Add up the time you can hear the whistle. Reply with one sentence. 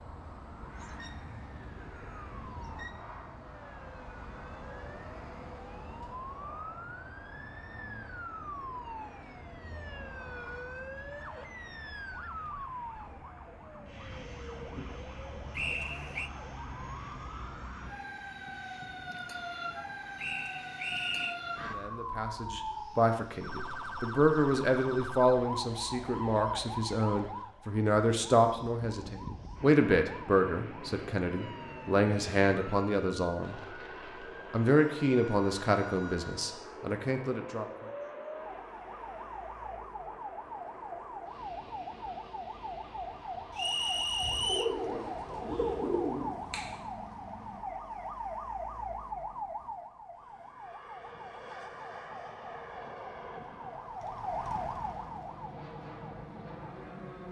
The whistle can be heard for 3 seconds in total.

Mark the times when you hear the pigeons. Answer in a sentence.
You can hear the pigeons from 44.2 to 46.8 s.